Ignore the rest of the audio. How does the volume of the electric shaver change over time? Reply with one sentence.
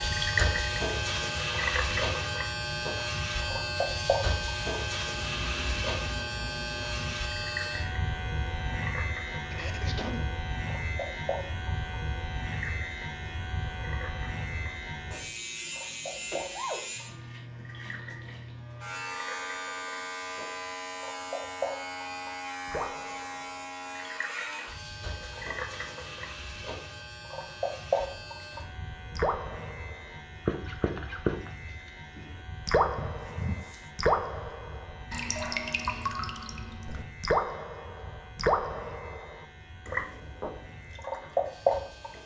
The volume of the electric shaver goes down.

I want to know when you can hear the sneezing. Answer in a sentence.
You can hear the sneezing from 9.5 to 10.2 s, from 16.1 to 16.9 s and from 33.0 to 33.9 s.